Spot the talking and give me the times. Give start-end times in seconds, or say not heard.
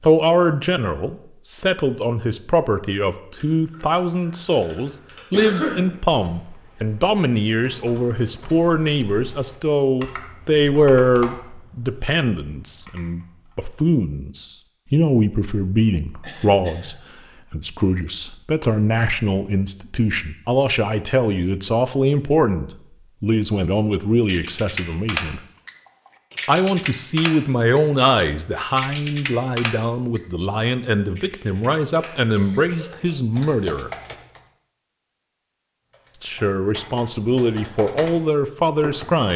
0.0-25.4, 26.4-33.9, 36.2-39.3.